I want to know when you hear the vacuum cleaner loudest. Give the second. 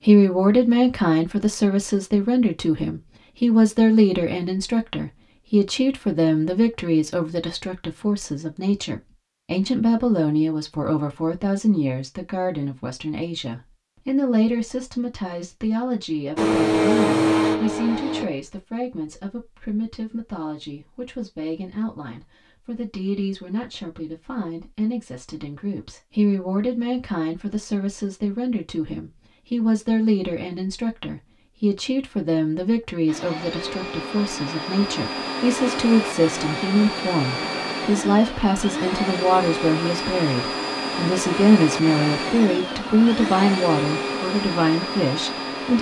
17 s.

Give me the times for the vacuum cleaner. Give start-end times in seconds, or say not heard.
16.4-18.2, 33.0-45.7.